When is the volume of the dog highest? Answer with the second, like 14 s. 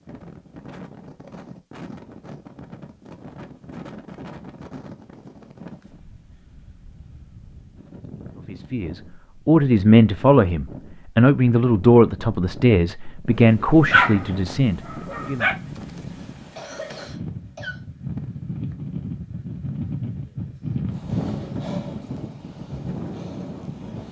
14 s.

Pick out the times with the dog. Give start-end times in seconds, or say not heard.
13.9-15.6.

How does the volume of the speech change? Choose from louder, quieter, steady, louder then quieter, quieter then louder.
quieter.